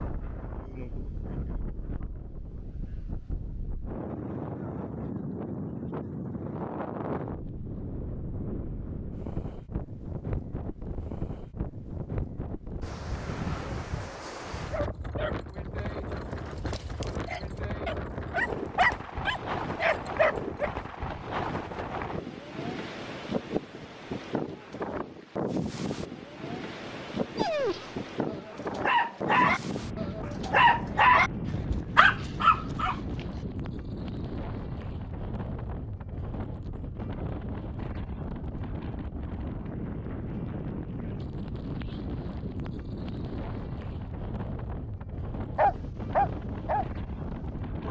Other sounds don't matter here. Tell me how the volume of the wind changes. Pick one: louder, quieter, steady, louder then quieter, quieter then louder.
steady.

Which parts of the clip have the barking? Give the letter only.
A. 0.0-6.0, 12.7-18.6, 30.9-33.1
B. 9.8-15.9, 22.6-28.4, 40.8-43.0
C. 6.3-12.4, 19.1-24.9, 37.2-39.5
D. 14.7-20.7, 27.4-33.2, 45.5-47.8
D.